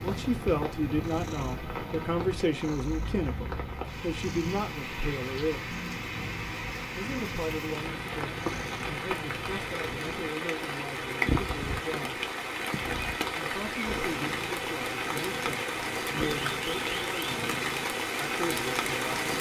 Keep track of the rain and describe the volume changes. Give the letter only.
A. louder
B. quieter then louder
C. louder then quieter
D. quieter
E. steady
A.